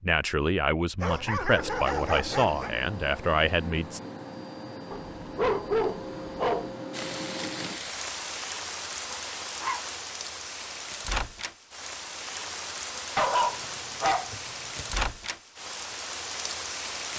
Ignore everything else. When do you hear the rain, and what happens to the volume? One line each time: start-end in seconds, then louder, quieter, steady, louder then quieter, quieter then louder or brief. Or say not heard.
6.9-17.1 steady.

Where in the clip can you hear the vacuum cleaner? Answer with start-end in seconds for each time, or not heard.
1.6-7.8.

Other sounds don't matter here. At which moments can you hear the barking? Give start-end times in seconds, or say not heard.
1.0-2.7, 4.9-6.7, 9.1-9.8, 13.2-14.9.